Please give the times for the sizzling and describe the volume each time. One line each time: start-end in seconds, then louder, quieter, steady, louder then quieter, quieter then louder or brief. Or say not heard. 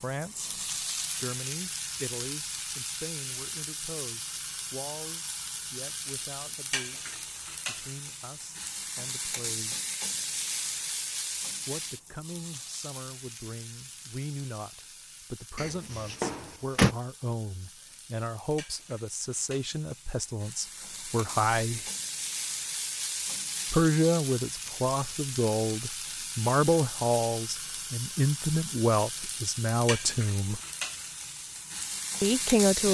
0.0-32.8 quieter then louder.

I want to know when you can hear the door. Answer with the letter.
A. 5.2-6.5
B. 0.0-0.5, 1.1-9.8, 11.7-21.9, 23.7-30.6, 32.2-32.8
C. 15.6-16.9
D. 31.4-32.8
C.